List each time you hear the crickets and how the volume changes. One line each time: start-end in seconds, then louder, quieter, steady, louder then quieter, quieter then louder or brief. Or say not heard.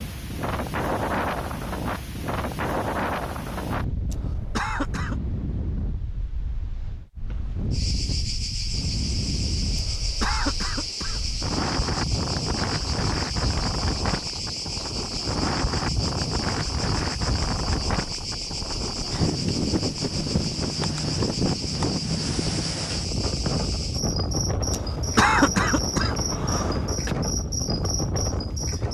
7.7-28.8 steady.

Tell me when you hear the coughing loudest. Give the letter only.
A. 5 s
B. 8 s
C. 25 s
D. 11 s
C.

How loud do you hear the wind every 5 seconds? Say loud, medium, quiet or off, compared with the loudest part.
loud, medium, loud, loud, loud, loud.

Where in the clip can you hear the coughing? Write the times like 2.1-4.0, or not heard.
4.1-5.2, 9.8-11.2, 24.7-27.1.